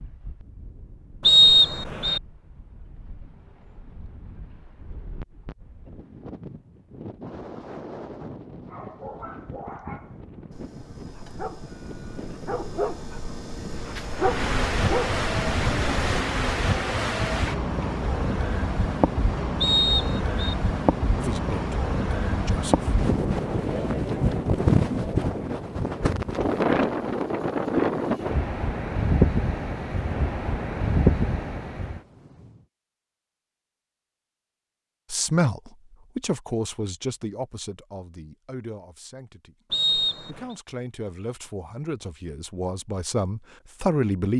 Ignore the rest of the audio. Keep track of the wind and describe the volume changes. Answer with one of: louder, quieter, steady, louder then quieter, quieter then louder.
louder.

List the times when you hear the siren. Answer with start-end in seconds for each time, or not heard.
not heard.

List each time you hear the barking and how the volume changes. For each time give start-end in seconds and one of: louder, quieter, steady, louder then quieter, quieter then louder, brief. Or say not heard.
8.7-16.1 louder.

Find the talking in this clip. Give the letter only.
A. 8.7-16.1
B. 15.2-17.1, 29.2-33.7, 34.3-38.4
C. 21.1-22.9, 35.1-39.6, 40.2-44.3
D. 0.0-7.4
C.